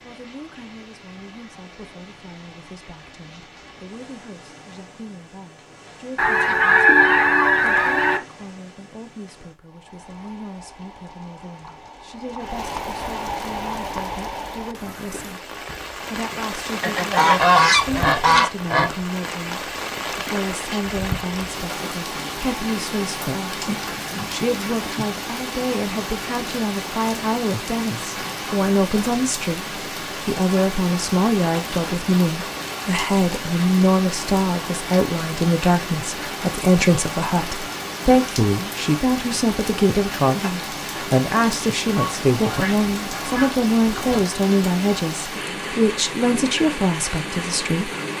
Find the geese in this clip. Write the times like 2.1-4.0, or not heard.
6.2-8.2, 16.8-18.9, 41.9-44.2.